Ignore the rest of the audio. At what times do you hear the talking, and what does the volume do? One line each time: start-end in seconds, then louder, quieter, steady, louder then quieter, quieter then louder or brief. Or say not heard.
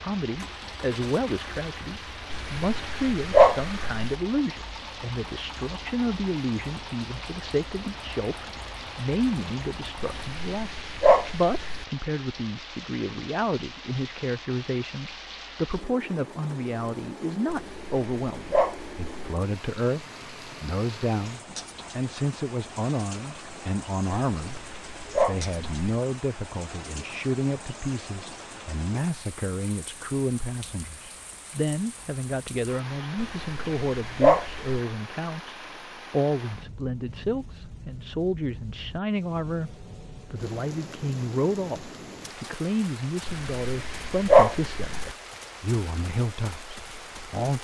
0.0-47.6 steady.